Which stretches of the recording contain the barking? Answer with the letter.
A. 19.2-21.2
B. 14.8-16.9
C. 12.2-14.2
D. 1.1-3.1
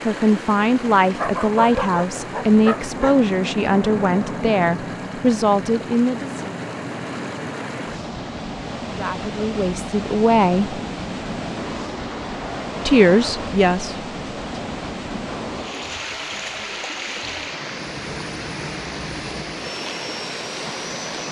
D.